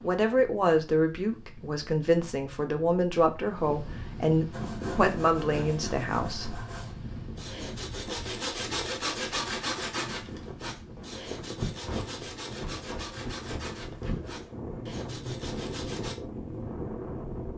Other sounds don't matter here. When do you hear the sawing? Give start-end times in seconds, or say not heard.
4.5-16.1.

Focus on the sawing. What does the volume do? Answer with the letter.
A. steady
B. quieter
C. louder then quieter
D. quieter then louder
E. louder
C.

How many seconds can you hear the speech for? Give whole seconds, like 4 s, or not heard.
7 s.